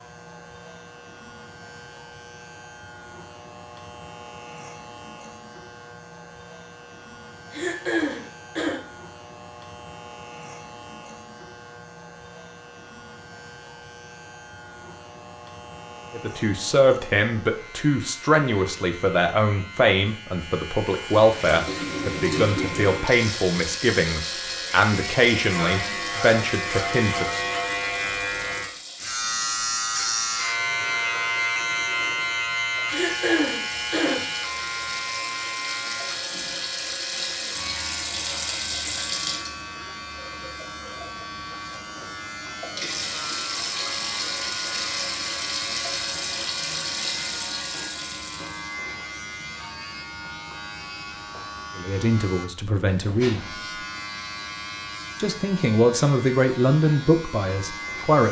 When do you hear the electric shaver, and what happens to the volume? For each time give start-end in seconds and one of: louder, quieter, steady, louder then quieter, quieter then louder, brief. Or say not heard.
0.0-58.2 louder then quieter.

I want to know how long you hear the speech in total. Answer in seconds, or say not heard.
16 s.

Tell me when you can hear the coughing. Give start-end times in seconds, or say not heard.
7.5-8.8, 32.9-34.3.